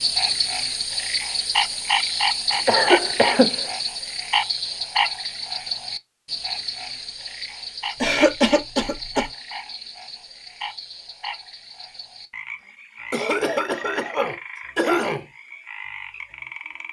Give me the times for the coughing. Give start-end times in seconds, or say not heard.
2.5-3.6, 8.0-9.2, 13.1-15.2.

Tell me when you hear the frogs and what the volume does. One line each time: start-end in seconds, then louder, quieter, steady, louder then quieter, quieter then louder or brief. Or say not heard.
0.0-16.8 quieter.